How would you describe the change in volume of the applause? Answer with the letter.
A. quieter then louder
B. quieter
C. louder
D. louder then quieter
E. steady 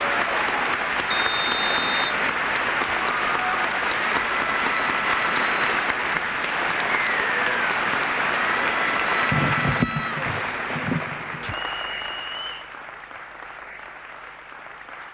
B.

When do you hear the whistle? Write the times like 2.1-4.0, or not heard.
1.1-2.1, 6.8-7.8, 11.4-12.7.